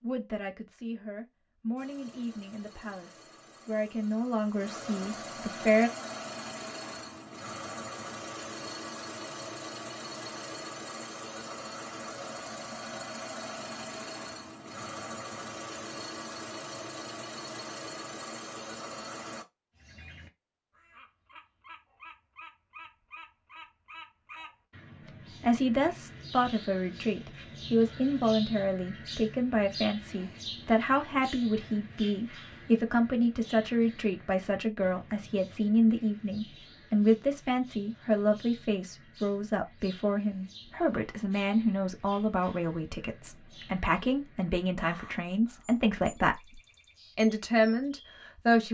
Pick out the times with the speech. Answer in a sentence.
The speech can be heard from 0.0 to 5.9 s and from 25.4 to 48.7 s.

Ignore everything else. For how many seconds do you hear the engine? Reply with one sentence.
You can hear the engine for 18 seconds altogether.